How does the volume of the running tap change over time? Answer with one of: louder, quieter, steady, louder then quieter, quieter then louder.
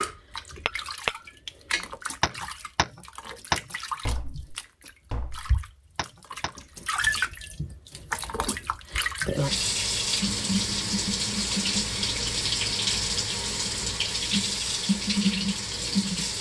louder.